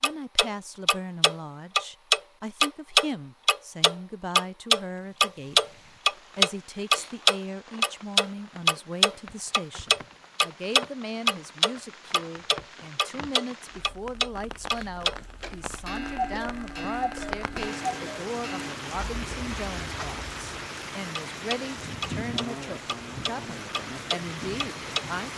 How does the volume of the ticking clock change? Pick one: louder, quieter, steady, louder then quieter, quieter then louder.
quieter.